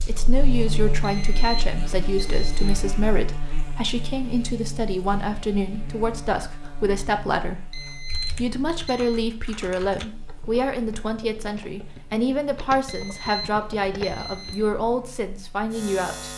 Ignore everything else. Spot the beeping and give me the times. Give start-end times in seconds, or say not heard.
1.0-2.9, 7.7-9.2, 12.8-14.7.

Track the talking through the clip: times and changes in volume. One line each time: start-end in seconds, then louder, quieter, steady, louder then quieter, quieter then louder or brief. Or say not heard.
0.1-16.3 steady.